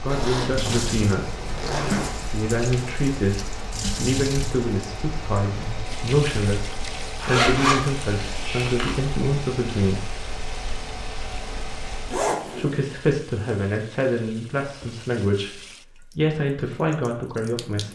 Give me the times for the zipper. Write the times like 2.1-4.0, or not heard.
0.1-2.1, 7.2-8.9, 12.1-12.8.